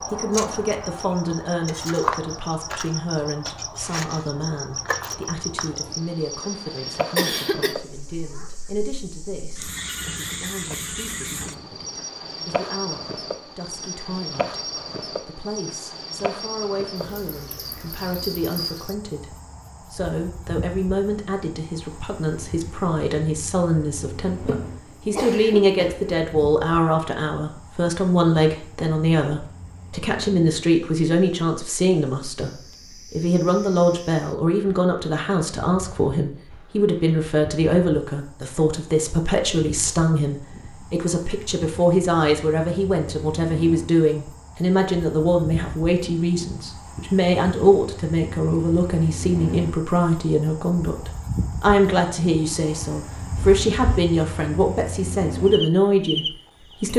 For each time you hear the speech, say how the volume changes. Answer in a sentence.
The speech can be heard from 0.1 to 56.9 s, getting louder.